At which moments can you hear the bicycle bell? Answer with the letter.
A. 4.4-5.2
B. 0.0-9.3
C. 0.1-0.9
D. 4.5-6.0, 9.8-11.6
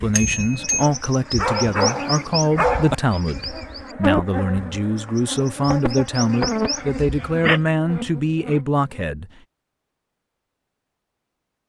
C.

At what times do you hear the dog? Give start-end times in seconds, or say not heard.
1.4-3.0, 6.8-8.6.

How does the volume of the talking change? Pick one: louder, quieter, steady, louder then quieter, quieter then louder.
steady.